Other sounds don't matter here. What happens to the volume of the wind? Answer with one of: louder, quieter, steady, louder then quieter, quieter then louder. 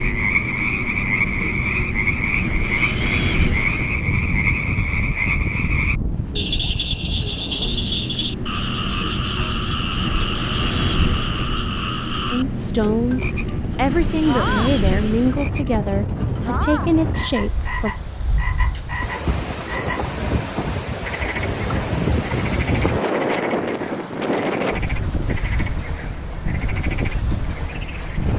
steady.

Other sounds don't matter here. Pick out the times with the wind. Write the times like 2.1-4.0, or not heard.
0.0-28.3.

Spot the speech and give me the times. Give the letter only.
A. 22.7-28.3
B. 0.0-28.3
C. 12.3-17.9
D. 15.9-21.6
C.